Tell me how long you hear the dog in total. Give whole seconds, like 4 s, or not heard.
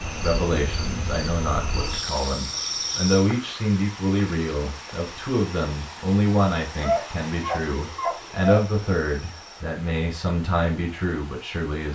2 s.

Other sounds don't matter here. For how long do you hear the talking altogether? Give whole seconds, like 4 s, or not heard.
12 s.